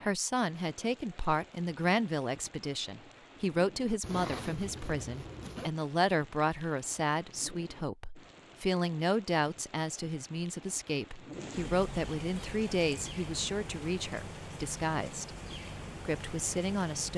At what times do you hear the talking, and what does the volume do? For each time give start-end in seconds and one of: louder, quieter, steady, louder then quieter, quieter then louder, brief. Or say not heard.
0.0-15.3 steady
16.1-17.1 brief.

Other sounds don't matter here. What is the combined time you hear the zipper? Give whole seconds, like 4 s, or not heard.
2 s.